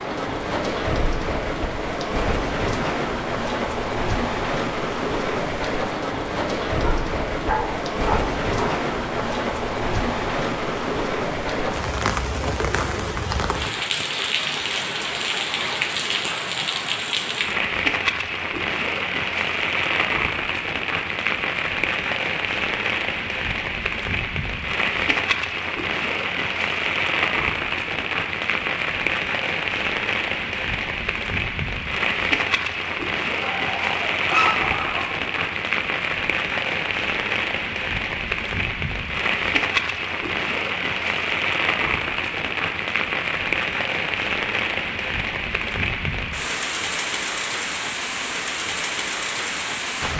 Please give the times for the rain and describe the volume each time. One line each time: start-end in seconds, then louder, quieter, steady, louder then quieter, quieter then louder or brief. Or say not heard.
0.0-50.1 steady.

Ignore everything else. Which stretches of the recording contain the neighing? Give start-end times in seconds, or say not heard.
not heard.